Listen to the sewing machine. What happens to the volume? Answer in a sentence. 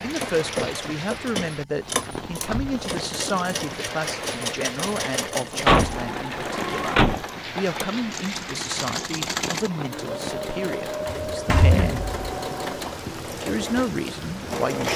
The volume of the sewing machine stays about the same.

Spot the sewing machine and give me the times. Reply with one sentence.
You can hear the sewing machine from 0.0 to 14.9 s.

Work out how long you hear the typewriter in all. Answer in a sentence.
You can't hear the typewriter here.